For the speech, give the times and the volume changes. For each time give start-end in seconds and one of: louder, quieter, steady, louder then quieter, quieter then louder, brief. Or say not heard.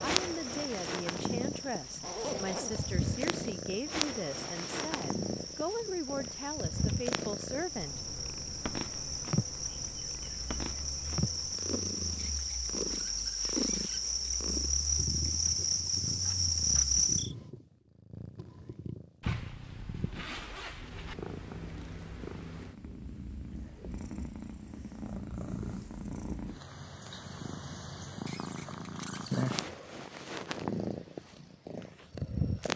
0.0-8.0 steady.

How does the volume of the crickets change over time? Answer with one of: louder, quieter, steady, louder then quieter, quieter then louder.
louder.